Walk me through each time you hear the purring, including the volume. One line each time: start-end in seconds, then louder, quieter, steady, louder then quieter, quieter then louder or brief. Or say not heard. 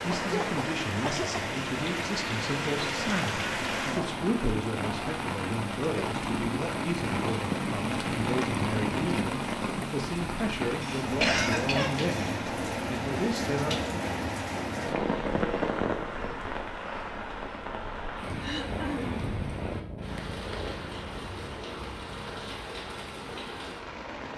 18.6-24.3 quieter.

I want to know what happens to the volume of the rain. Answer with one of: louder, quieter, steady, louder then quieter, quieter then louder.
quieter.